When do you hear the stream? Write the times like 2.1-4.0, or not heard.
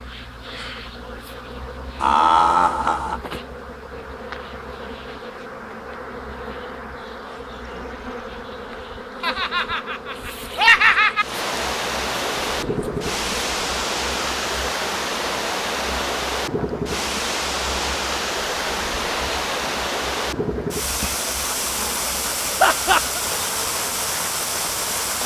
11.2-25.2.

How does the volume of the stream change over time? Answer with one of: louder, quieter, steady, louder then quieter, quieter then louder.
steady.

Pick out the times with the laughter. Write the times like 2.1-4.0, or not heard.
2.0-3.2, 9.2-11.2, 22.6-23.2.